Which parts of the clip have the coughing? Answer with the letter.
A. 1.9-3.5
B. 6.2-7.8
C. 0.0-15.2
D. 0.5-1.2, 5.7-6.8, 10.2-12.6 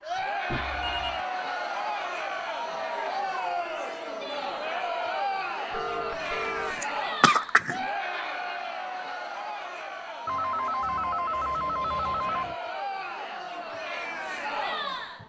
B.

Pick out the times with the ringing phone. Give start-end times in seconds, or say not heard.
0.5-1.2, 5.7-6.8, 10.2-12.6.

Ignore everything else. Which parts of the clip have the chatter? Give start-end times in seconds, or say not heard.
0.0-15.2.